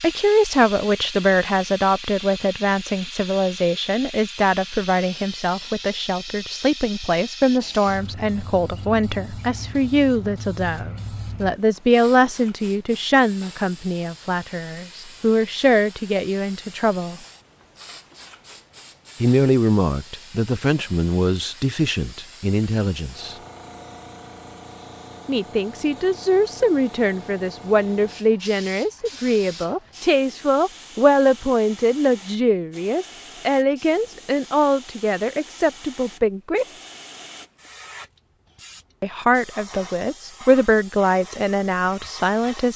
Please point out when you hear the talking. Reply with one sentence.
You can hear the talking from 0.0 to 17.2 s, from 19.2 to 23.4 s, from 25.2 to 36.6 s and from 39.0 to 42.7 s.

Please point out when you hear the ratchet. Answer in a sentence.
The ratchet can't be heard in this clip.